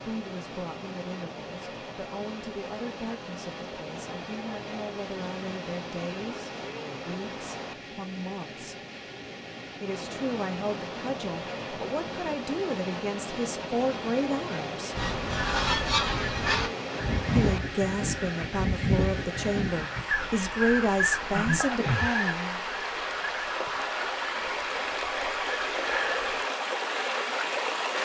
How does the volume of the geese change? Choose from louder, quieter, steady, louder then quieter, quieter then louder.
quieter.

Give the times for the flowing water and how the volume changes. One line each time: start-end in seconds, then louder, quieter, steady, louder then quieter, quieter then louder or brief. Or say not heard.
0.0-27.9 louder.